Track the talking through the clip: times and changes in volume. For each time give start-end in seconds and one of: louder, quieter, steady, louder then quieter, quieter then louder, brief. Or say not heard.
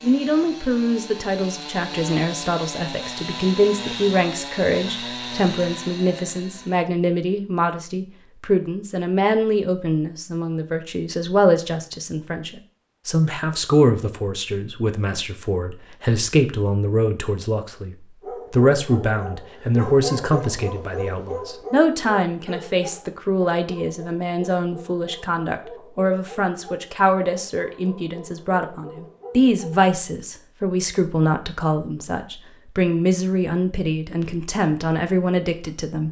0.0-36.0 steady.